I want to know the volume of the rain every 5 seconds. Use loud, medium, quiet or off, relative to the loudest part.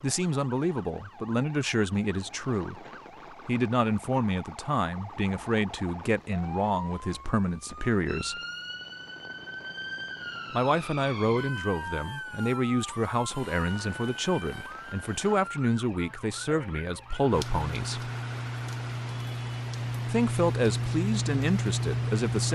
quiet, quiet, quiet, medium, loud.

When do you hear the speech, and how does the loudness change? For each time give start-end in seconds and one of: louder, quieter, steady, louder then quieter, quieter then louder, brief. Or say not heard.
0.0-2.9 brief
3.5-8.4 steady
10.5-18.1 steady
20.1-22.5 brief.